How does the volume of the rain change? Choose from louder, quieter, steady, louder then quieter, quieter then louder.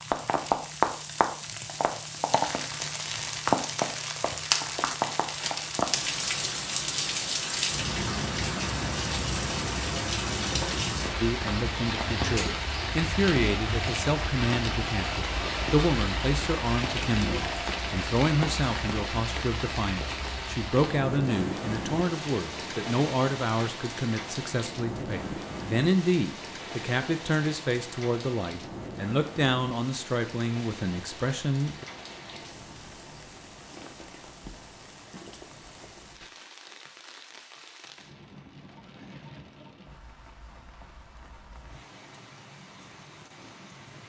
quieter.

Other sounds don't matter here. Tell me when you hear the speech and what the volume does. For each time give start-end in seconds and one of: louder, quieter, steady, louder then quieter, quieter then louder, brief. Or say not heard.
11.2-31.9 steady.